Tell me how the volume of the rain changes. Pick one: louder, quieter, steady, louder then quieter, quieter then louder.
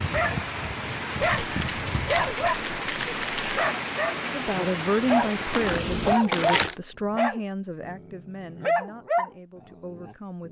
steady.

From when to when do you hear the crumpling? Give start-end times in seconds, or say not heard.
1.2-3.7, 5.5-6.8.